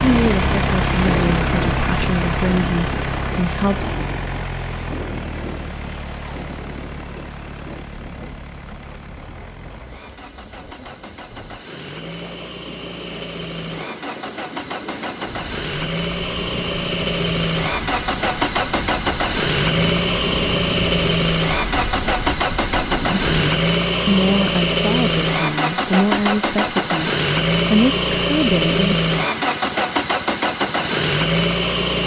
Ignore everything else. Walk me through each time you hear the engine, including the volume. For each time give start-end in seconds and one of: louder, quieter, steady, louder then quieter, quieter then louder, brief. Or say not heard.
0.0-32.0 quieter then louder.